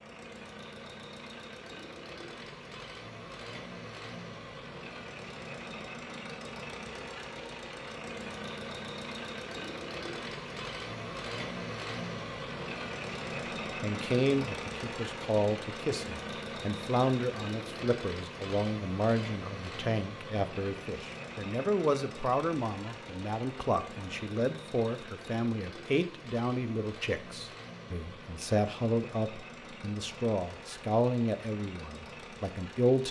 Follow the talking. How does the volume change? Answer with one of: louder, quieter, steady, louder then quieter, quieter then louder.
steady.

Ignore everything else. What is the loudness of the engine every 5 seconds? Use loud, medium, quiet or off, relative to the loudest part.
medium, loud, loud, loud, medium, medium, medium.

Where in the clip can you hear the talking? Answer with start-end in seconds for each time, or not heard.
13.8-33.0.